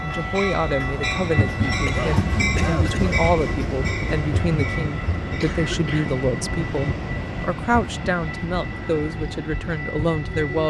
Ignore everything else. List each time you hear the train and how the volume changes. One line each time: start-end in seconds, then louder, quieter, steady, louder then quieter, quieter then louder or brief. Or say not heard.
0.0-10.6 quieter.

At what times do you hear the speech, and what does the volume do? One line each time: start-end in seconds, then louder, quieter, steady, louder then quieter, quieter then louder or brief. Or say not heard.
0.0-10.6 steady.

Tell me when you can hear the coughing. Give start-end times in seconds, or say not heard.
1.9-3.2, 5.4-6.1.